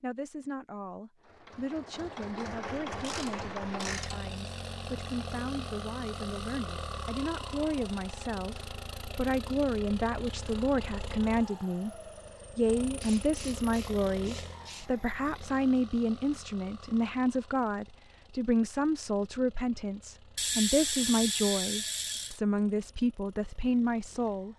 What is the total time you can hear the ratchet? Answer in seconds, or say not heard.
6 s.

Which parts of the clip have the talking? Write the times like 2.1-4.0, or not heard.
0.0-11.9, 12.6-24.5.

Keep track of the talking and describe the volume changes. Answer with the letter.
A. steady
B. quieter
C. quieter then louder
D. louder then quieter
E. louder
E.